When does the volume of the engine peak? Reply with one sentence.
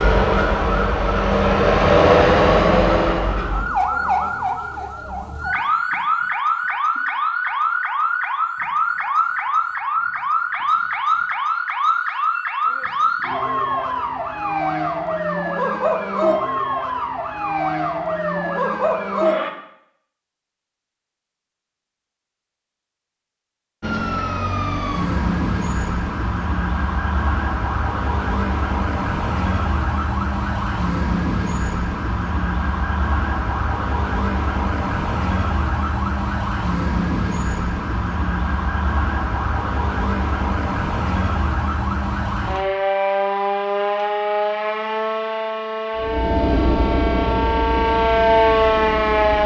The volume of the engine peaks at 2 seconds.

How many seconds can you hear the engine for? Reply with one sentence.
The engine can be heard for 7 seconds in total.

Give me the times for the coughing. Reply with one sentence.
You can't hear the coughing here.